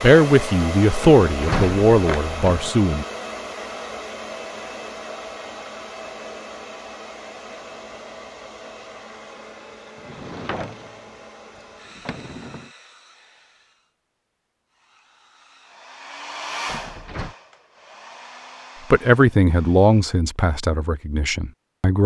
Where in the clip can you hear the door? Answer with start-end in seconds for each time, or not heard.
1.0-2.7, 9.9-12.7, 16.6-17.4.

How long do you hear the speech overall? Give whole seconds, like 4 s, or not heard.
6 s.